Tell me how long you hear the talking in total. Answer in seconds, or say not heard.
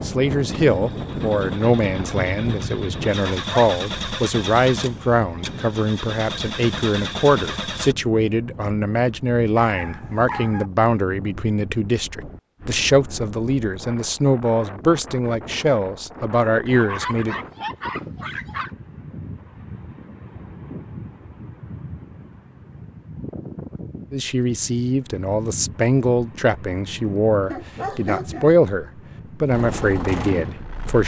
24 s.